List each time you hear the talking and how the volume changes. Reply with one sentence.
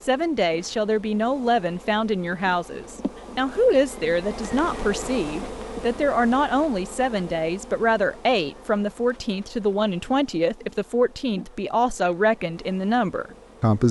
The talking can be heard from 0.1 to 13.8 s, at a steady volume.